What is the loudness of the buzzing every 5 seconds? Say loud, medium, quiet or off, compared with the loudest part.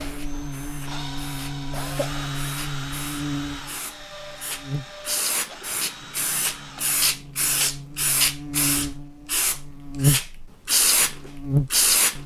medium, quiet, loud.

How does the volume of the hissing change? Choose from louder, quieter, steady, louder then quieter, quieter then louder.
louder.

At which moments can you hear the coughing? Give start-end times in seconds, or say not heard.
1.7-2.4.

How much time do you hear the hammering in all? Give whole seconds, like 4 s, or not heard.
not heard.